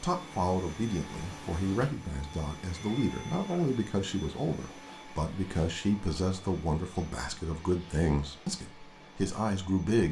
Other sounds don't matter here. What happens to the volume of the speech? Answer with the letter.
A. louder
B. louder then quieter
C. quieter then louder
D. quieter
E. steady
E.